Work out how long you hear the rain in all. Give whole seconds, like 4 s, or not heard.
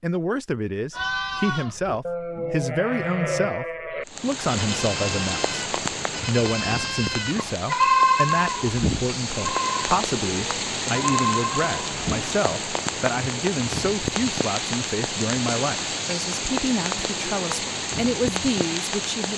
15 s.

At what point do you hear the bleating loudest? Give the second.
8 s.